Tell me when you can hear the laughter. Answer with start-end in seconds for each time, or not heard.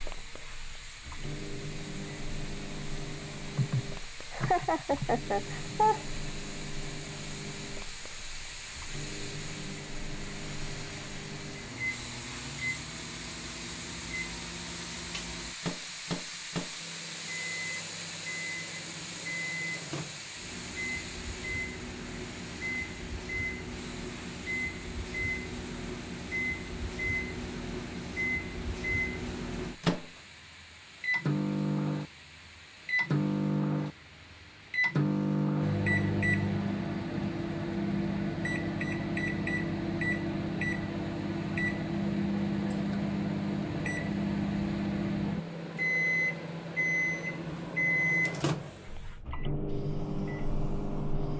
3.5-6.0.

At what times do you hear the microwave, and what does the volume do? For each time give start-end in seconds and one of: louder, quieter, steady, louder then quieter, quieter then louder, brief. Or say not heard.
0.0-51.3 louder.